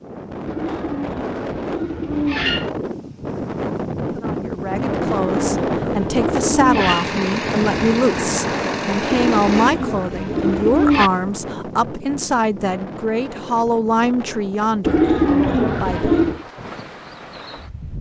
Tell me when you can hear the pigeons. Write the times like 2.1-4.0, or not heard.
0.5-2.7, 4.9-7.0, 9.1-11.1, 14.8-16.4.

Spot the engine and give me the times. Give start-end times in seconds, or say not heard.
6.8-11.2.